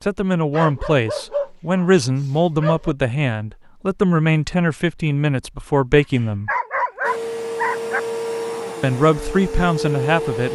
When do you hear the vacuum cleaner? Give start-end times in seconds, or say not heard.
7.0-10.4.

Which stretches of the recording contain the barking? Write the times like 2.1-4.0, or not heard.
0.5-3.0, 6.2-8.0.